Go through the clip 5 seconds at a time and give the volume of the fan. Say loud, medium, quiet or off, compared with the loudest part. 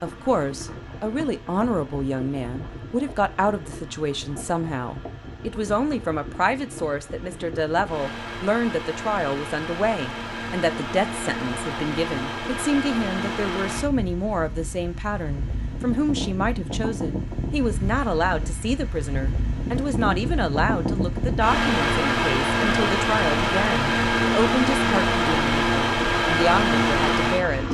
quiet, quiet, medium, medium, loud, loud.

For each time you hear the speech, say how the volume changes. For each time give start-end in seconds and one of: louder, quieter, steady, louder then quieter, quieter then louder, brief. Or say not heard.
0.0-27.6 steady.